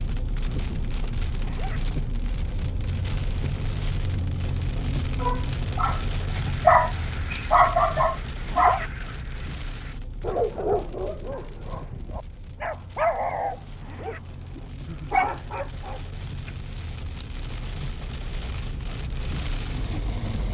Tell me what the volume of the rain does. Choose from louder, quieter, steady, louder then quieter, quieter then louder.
quieter then louder.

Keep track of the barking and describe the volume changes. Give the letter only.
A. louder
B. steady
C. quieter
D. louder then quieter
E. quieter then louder
C.